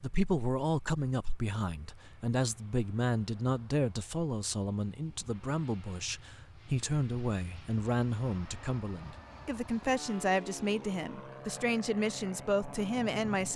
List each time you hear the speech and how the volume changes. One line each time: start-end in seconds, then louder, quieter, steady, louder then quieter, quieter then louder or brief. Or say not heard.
0.0-13.5 steady.